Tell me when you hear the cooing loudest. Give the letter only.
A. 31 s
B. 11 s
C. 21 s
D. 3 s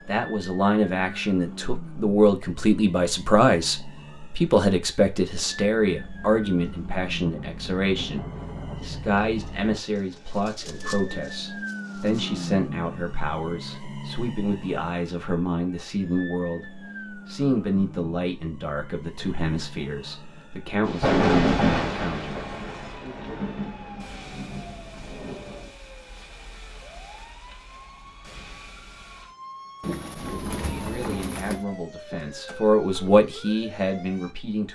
A.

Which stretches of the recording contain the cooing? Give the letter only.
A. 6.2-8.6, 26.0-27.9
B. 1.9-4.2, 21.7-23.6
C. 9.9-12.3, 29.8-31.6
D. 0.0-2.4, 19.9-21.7
C.